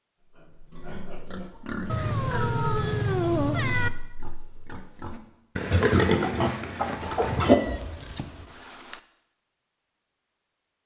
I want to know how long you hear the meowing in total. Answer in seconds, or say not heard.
4 s.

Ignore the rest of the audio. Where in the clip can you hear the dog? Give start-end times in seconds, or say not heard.
not heard.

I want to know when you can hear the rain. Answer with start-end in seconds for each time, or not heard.
not heard.